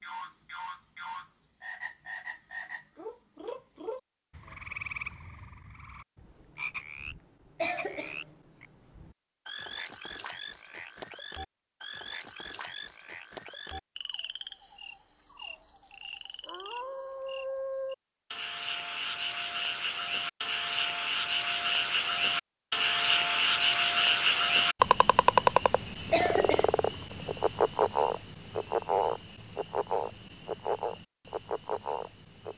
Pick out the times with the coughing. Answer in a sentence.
You can hear the coughing from 7.5 to 8.2 s and from 26.1 to 26.7 s.